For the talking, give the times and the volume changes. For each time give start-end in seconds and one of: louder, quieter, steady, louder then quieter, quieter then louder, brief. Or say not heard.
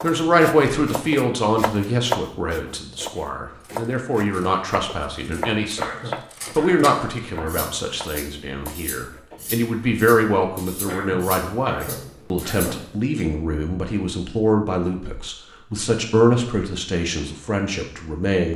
0.0-18.5 steady.